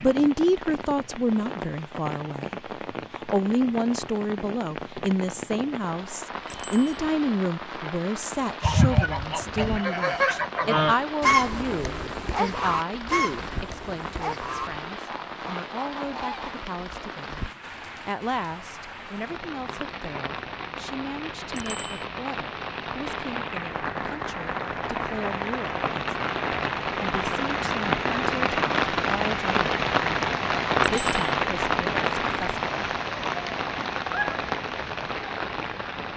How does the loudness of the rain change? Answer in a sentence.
The loudness of the rain goes up.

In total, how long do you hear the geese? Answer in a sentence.
You can hear the geese for 8 seconds altogether.